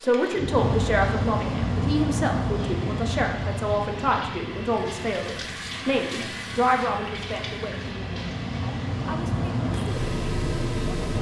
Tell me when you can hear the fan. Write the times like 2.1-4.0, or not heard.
0.0-11.1.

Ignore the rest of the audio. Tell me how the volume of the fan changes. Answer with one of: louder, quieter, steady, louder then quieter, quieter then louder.
quieter then louder.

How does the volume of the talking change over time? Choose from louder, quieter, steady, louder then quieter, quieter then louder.
quieter.